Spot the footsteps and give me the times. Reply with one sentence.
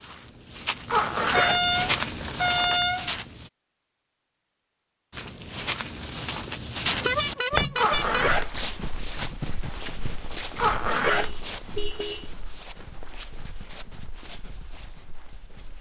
You can hear the footsteps from 0.0 to 3.5 s and from 5.1 to 15.7 s.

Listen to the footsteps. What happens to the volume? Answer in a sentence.
The volume of the footsteps goes down.